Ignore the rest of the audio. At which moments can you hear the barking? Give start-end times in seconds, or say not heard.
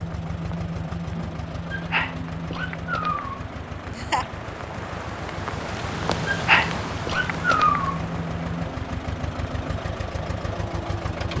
1.7-3.4, 6.2-8.0.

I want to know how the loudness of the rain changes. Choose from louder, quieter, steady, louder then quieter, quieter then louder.
louder then quieter.